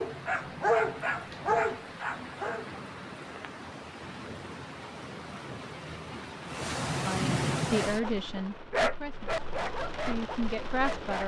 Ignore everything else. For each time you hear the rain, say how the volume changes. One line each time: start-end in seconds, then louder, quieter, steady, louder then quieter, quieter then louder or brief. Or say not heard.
0.0-11.2 louder then quieter.